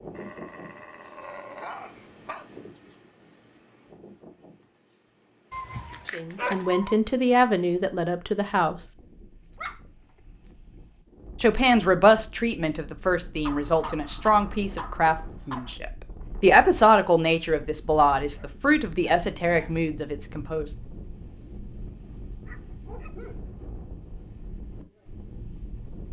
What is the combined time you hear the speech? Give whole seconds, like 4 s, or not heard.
12 s.